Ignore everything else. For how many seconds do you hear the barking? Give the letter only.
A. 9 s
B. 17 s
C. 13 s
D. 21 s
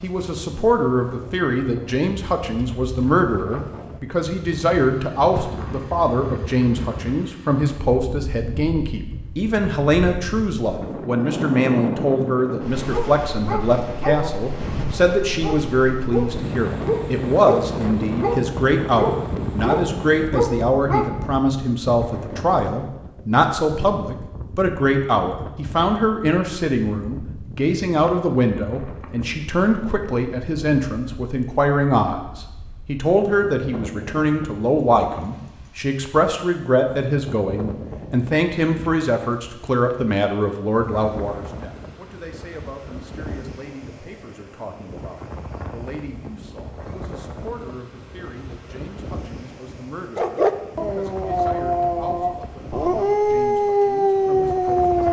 C.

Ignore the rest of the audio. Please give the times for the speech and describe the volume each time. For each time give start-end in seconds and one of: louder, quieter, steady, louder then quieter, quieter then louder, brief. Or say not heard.
0.0-55.0 quieter.